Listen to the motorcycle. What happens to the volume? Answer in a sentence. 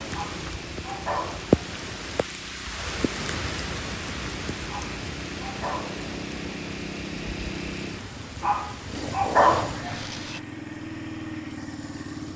The volume of the motorcycle goes up.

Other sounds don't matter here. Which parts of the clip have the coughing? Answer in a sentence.
The coughing can't be heard in this clip.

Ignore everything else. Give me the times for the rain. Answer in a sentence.
The rain can be heard from 0.0 to 10.4 s.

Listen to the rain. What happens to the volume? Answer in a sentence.
The volume of the rain goes down.